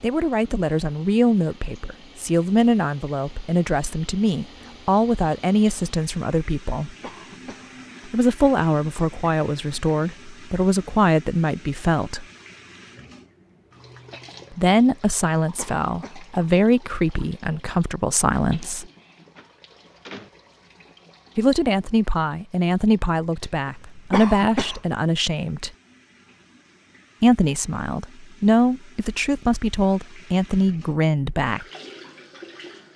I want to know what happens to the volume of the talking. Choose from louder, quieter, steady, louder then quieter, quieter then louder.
steady.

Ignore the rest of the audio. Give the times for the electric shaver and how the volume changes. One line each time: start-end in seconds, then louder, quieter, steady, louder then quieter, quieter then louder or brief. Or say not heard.
not heard.